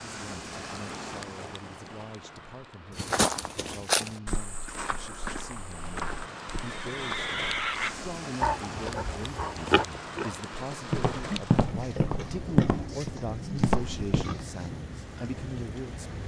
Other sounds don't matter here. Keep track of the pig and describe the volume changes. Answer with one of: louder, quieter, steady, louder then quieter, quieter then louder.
quieter.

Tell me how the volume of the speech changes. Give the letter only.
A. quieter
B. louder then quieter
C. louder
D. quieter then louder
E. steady
C.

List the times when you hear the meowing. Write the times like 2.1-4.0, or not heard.
not heard.